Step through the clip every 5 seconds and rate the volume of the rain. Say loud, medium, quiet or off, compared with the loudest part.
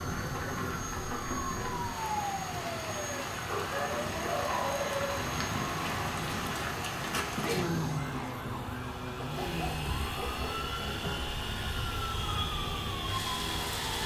loud, loud, medium.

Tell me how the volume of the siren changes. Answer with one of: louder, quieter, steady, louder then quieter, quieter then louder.
steady.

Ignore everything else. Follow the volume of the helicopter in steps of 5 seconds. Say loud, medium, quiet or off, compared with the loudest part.
medium, medium, loud.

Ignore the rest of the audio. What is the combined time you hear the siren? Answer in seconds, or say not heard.
14 s.